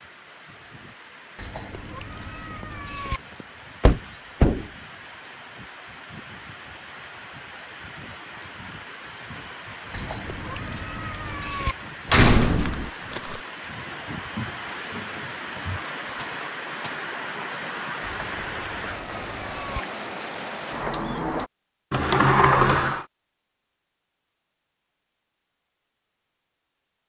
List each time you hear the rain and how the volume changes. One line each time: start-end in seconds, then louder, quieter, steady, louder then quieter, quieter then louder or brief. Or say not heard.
0.0-21.5 louder.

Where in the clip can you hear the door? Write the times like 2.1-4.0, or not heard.
3.8-4.7, 12.1-12.9, 21.9-23.1.